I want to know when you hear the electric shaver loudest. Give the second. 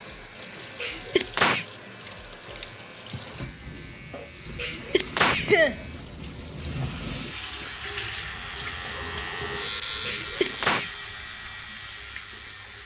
10 s.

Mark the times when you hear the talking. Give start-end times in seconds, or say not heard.
not heard.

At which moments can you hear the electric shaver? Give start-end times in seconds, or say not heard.
0.0-12.8.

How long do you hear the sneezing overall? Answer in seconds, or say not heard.
3 s.